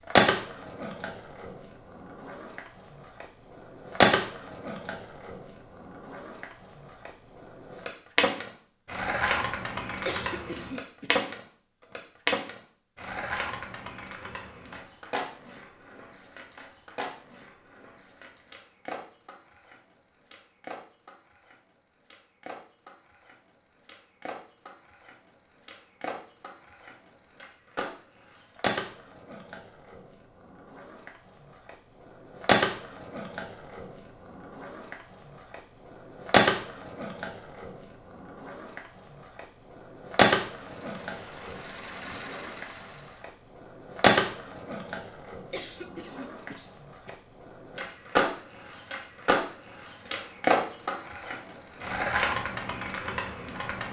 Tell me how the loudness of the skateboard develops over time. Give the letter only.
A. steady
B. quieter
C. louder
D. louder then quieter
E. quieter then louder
E.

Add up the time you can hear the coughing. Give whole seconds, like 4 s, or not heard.
3 s.